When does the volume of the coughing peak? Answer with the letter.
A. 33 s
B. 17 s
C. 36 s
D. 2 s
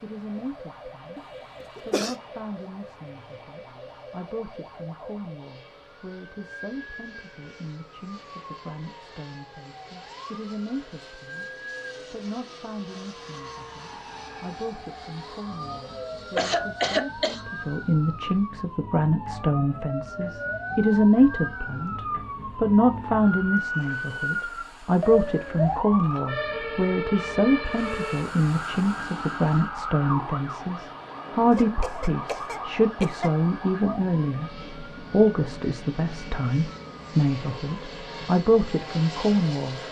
B.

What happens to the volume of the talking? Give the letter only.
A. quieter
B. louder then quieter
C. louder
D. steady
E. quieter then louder
C.